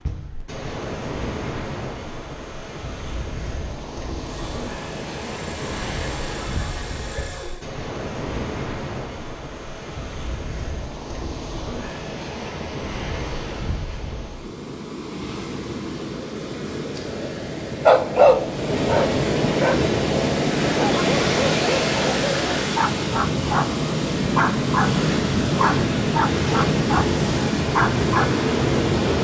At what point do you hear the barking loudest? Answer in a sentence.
The loudest moment of the barking is at 18 seconds.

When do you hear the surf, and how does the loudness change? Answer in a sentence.
You can hear the surf from 0.0 to 29.1 s, getting louder.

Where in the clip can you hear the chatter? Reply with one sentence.
You can't hear the chatter here.